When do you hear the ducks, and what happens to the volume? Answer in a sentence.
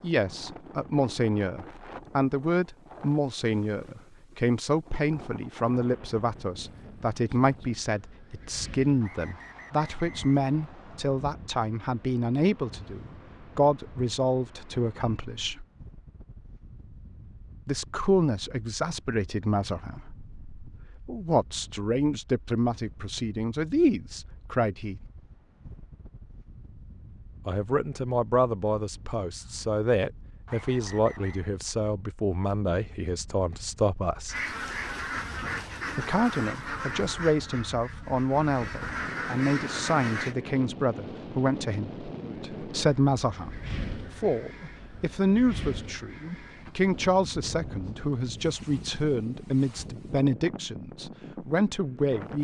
The ducks can be heard from 34.2 to 40.4 s, getting quieter then louder.